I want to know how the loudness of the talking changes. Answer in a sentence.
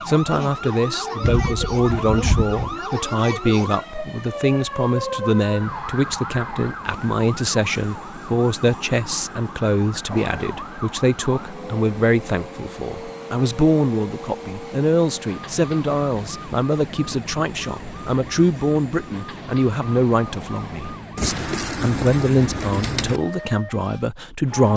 The loudness of the talking stays about the same.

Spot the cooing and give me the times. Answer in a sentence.
You can hear the cooing from 1.2 to 2.8 s and from 21.1 to 23.2 s.